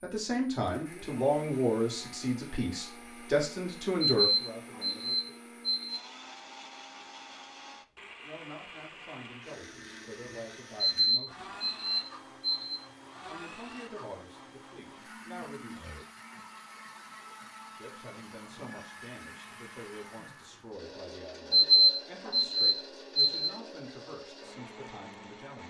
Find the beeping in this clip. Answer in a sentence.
You can hear the beeping from 4.0 to 6.0 s, from 10.9 to 12.8 s and from 21.5 to 23.5 s.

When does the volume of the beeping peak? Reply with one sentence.
The loudest moment of the beeping is at 22 seconds.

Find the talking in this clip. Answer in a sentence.
The talking can be heard from 0.0 to 5.3 s, from 8.2 to 11.7 s, from 13.2 to 15.8 s and from 17.7 to 25.6 s.